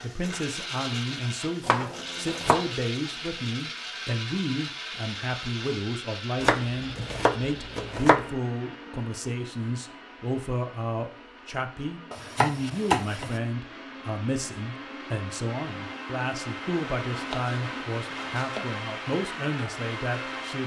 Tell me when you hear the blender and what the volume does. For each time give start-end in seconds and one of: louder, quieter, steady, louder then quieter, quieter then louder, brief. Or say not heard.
0.0-20.6 quieter then louder.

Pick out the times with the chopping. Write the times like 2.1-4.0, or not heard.
1.6-2.7, 6.4-8.2, 12.1-13.4, 17.1-18.6.